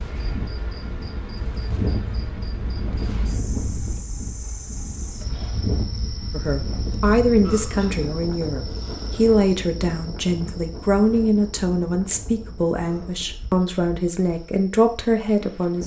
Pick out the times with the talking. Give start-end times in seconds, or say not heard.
6.3-15.8.